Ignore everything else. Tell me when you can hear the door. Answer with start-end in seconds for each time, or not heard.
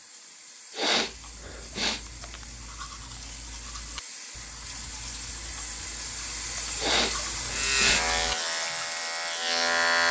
not heard.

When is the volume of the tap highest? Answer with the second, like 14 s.
7 s.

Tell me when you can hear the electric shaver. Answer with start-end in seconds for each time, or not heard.
7.5-10.0.